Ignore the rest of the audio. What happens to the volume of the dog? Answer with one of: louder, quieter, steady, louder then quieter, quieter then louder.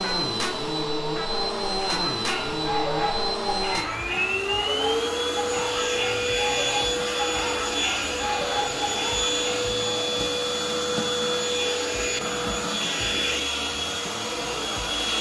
steady.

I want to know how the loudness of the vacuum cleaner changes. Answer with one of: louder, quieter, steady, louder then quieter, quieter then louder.
steady.